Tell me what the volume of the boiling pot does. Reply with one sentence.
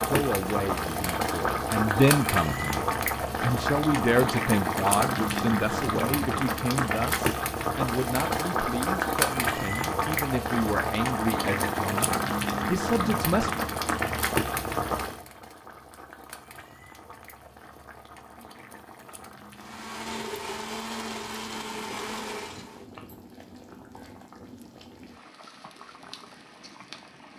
The volume of the boiling pot goes down.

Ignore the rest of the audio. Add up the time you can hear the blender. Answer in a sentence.
The blender can be heard for 3 seconds in total.